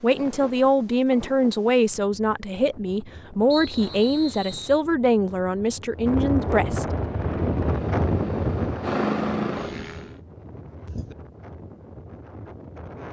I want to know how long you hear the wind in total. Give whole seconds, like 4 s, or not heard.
13 s.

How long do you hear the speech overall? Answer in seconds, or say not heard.
7 s.